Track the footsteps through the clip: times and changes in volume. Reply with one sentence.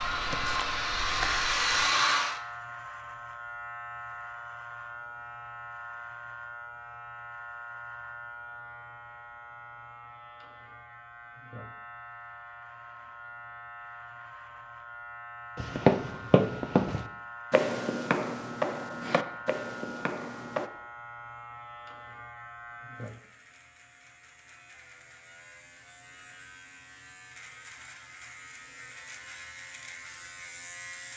You can hear the footsteps briefly from 0.0 to 1.9 s; and from 15.6 to 20.7 s, getting quieter.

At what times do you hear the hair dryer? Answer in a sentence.
You can hear the hair dryer from 0.0 to 2.4 s.